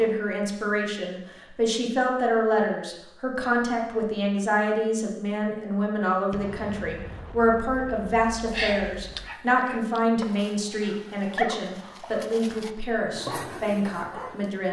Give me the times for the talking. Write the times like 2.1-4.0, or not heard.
0.0-14.6.